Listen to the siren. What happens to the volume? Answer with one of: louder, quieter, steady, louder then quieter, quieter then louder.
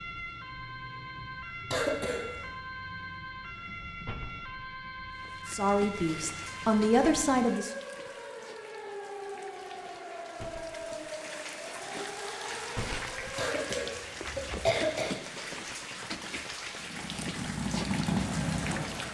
steady.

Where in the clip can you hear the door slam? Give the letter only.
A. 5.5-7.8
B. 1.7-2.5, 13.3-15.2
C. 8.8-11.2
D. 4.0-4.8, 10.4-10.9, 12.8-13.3
D.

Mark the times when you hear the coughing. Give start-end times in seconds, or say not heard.
1.7-2.5, 13.3-15.2.